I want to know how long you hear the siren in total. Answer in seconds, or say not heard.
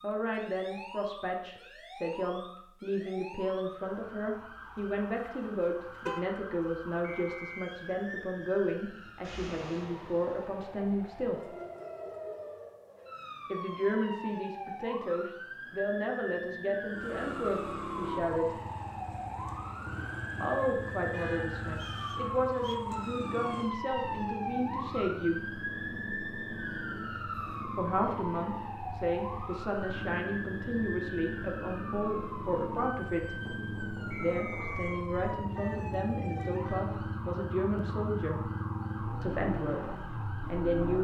41 s.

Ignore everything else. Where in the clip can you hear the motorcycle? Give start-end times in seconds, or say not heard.
16.9-40.9.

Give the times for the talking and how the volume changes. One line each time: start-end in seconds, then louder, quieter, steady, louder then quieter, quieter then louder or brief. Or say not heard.
0.0-11.4 steady
13.5-18.6 steady
20.4-25.4 steady
27.8-33.4 steady
34.2-38.5 steady
39.2-40.9 brief.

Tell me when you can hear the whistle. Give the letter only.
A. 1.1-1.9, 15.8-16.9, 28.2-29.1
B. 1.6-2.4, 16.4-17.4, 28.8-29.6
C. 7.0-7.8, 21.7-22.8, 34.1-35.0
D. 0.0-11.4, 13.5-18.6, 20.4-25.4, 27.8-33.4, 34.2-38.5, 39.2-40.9
C.